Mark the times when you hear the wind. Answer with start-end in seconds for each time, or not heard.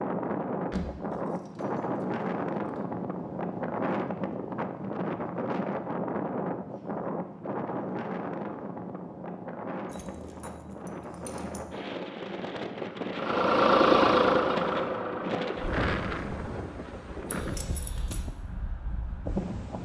0.0-19.7.